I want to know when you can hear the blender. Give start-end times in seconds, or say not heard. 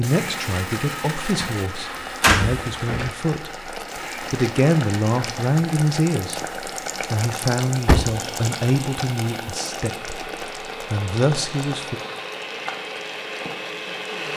0.0-14.3.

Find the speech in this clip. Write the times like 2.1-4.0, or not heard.
0.0-6.4, 7.1-10.2, 10.9-12.0.